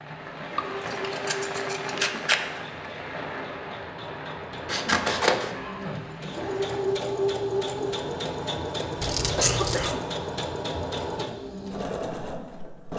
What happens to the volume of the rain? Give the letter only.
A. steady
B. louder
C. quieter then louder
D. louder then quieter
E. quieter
E.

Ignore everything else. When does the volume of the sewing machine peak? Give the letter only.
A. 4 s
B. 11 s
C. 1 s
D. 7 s
D.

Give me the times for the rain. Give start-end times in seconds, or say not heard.
0.0-6.8.